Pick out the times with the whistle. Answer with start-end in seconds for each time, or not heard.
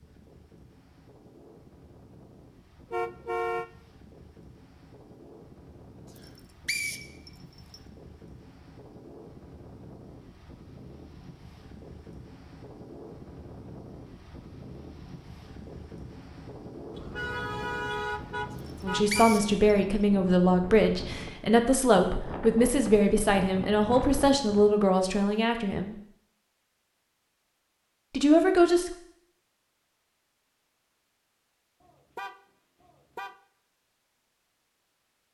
6.2-7.8, 18.6-19.6.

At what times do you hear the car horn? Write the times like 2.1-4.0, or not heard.
2.9-3.6, 16.9-19.4, 31.8-33.4.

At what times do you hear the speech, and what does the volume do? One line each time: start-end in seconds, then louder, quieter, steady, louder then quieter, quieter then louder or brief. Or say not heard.
18.8-26.0 steady
28.1-28.9 brief.